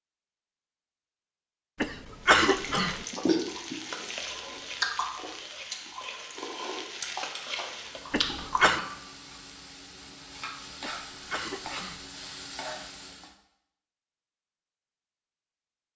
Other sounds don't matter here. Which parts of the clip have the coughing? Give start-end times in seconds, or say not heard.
1.8-3.0, 8.1-8.8, 10.8-12.1.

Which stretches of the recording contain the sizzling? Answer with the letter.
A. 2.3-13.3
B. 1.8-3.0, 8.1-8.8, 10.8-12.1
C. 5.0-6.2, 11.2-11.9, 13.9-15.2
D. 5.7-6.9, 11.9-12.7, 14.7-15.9
A.